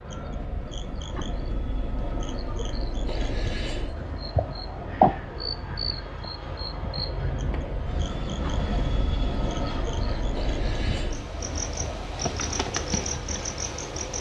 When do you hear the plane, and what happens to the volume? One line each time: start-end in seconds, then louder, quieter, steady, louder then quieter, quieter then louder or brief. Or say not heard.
0.0-14.1 louder then quieter.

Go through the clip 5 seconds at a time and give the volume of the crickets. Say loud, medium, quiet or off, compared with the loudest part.
medium, loud, loud.